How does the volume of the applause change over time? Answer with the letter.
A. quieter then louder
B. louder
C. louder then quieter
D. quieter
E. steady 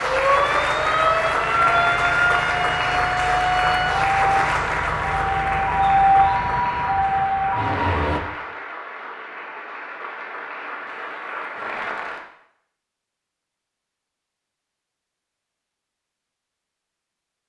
D.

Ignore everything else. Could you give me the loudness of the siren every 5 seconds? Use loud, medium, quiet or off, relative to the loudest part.
loud, loud, off, off.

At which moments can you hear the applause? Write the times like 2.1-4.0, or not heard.
0.0-12.2.